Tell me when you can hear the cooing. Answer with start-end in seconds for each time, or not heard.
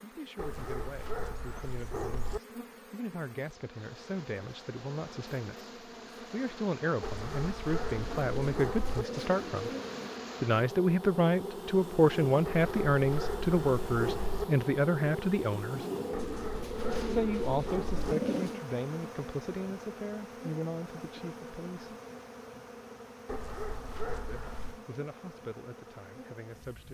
8.0-10.2, 15.7-18.6.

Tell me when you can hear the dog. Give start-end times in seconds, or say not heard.
0.3-2.4, 7.0-9.1, 12.4-14.4, 16.1-18.1, 23.2-24.8.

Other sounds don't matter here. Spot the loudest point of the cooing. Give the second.
18 s.